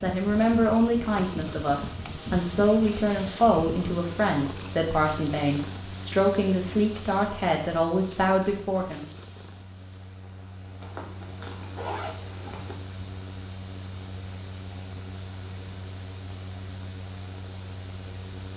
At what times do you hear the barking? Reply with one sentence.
You can't hear the barking here.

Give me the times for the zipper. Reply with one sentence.
You can hear the zipper from 10.8 to 12.8 s.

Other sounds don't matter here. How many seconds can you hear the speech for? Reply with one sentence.
You can hear the speech for 9 seconds altogether.